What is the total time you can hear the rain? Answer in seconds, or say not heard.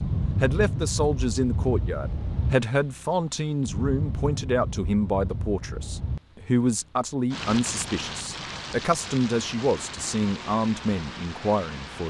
12 s.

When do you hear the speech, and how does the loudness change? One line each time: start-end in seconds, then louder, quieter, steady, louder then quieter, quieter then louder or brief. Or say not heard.
0.4-12.0 steady.